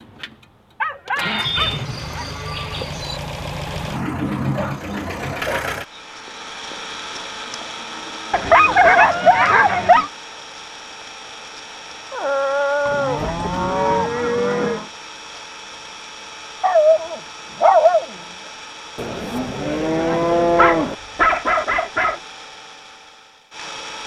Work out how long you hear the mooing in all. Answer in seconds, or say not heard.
8 s.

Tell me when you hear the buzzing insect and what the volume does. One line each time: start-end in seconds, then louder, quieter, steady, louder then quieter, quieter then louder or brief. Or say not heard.
not heard.